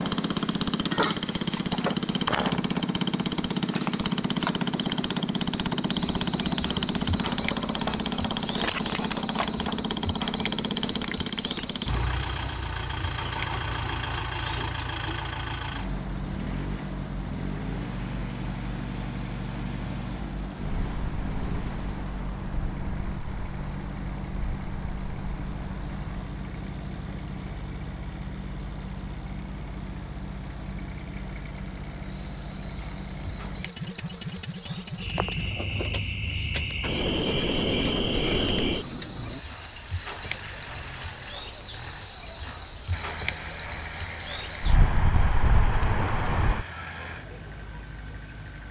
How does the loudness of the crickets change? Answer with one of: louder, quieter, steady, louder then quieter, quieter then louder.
quieter then louder.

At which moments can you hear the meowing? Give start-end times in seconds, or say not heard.
not heard.